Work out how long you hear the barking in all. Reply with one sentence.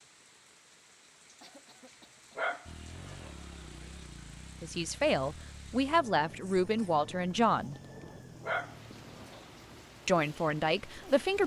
The barking can be heard for 3 seconds in total.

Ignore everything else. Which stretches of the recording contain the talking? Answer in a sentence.
You can hear the talking from 4.6 to 7.8 s and from 10.1 to 11.4 s.